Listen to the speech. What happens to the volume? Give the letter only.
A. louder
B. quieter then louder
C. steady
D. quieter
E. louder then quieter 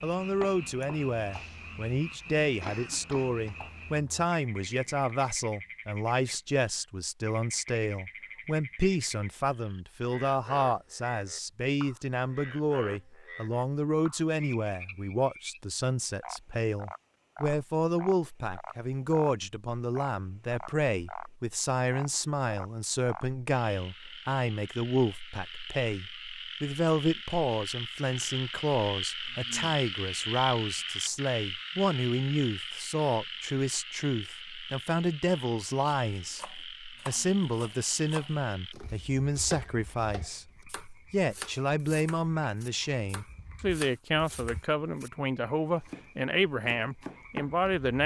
C.